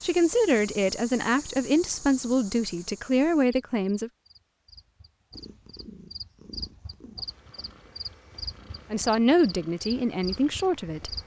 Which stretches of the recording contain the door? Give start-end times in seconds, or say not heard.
not heard.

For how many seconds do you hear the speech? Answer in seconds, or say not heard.
6 s.